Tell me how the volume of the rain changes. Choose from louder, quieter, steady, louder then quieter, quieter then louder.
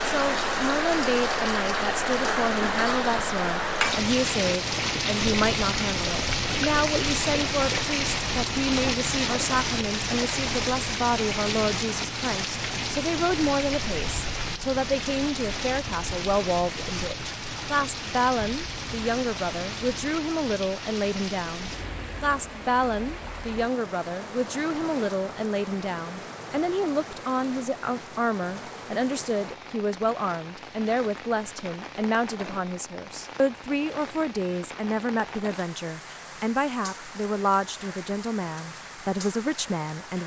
quieter.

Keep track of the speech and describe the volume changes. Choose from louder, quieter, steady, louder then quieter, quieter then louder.
steady.